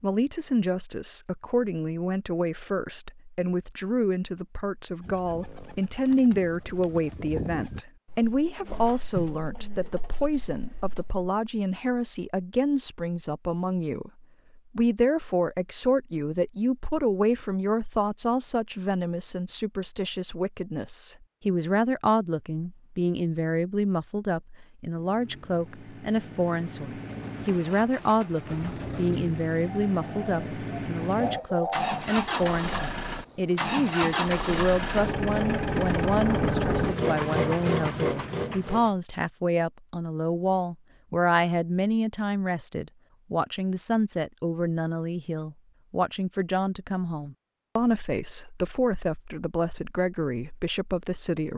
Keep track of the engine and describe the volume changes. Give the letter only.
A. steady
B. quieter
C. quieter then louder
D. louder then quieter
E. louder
E.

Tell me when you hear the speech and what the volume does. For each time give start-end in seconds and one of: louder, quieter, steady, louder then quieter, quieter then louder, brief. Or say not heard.
0.0-51.5 steady.